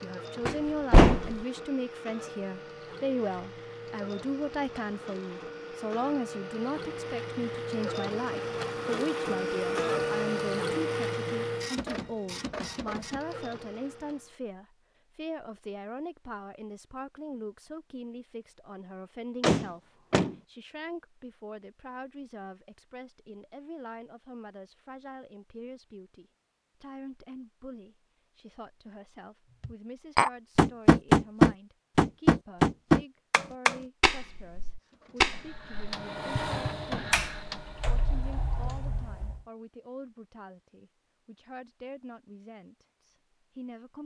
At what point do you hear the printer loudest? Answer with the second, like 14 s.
10 s.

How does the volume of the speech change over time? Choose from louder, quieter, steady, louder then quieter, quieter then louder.
quieter.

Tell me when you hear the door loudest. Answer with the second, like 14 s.
1 s.